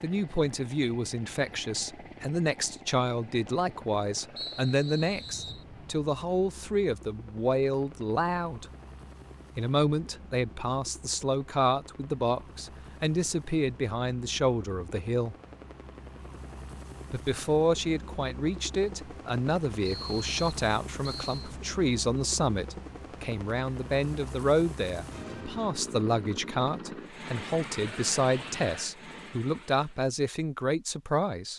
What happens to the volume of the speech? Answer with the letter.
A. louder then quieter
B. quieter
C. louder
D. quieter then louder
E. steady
E.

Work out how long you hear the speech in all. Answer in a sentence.
The speech can be heard for 29 seconds in total.